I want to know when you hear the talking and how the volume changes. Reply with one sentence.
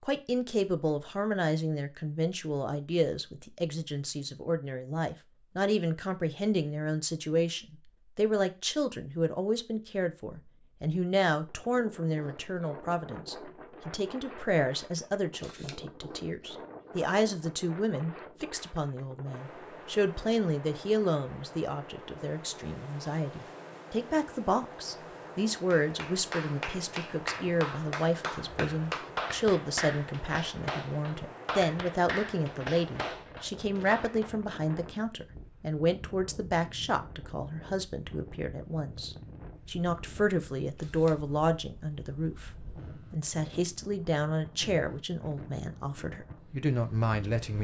The talking can be heard from 0.0 to 47.6 s, at a steady volume.